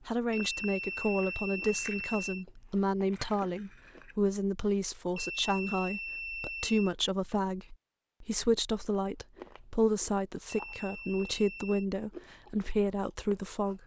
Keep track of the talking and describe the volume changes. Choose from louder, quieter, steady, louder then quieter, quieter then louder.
steady.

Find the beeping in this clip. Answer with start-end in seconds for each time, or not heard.
0.3-2.5, 5.2-7.0, 10.4-11.8.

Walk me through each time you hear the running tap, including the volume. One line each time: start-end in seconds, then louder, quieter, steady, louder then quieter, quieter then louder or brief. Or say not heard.
not heard.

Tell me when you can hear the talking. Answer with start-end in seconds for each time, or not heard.
0.1-13.8.